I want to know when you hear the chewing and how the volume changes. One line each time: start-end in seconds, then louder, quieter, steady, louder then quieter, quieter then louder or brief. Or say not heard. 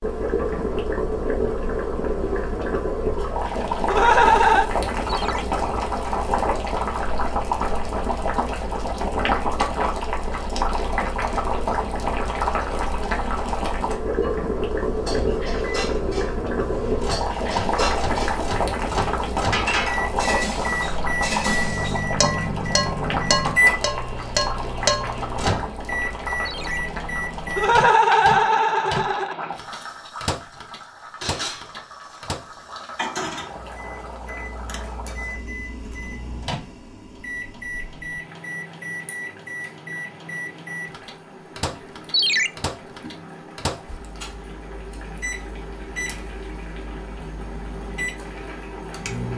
not heard.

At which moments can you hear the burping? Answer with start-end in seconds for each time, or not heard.
not heard.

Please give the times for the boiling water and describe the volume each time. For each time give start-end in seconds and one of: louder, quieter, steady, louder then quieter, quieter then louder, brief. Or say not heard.
0.0-49.3 quieter.